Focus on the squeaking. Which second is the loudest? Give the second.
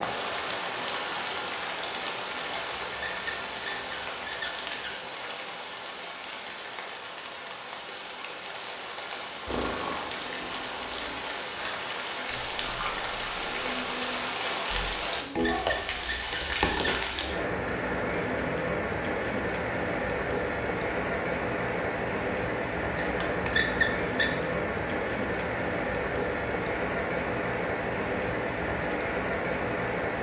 24 s.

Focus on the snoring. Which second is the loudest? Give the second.
10 s.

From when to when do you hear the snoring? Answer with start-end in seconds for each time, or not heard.
9.4-15.0.